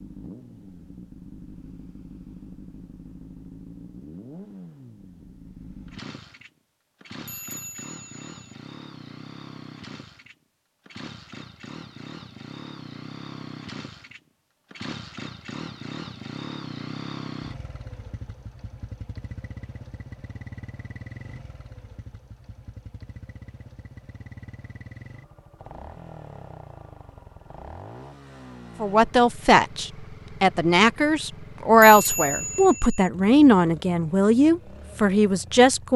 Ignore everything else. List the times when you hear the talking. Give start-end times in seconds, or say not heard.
28.8-35.9.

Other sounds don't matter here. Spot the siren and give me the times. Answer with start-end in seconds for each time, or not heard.
not heard.